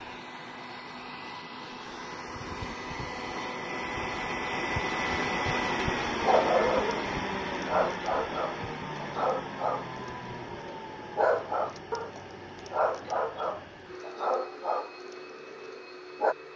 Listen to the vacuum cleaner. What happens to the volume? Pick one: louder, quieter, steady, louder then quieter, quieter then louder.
louder then quieter.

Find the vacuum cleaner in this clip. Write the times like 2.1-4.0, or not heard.
0.0-16.5.